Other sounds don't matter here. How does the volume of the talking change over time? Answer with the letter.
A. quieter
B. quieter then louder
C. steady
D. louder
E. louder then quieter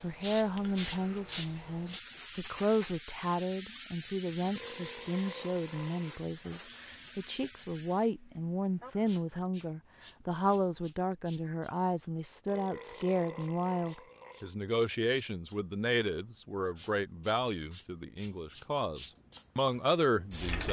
C.